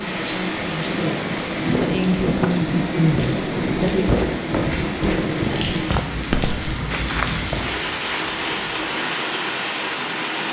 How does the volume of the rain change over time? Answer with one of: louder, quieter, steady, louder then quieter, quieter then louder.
steady.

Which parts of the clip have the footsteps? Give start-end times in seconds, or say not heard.
1.6-9.1.